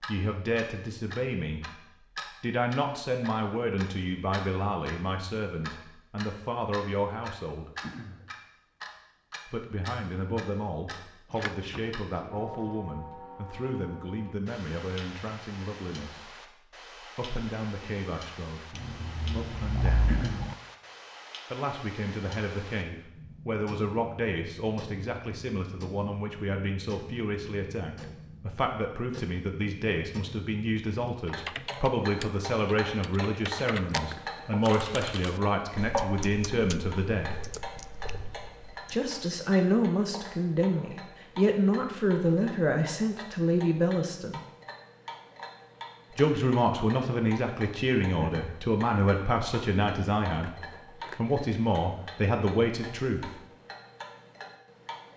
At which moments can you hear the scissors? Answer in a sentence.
The scissors can be heard from 11.3 to 11.9 s, from 18.7 to 20.6 s and from 50.3 to 51.4 s.